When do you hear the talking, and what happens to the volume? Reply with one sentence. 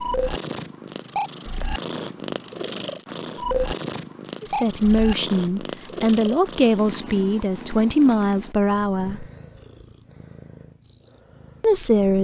The talking can be heard from 4.4 to 9.2 s, at a steady volume; and briefly from 11.6 to 12.1 s.